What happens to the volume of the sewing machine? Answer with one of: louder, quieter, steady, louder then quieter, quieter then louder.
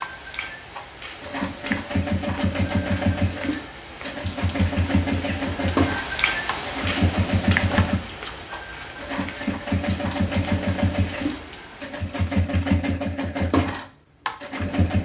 steady.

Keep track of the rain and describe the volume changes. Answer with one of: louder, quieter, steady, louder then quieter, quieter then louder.
louder then quieter.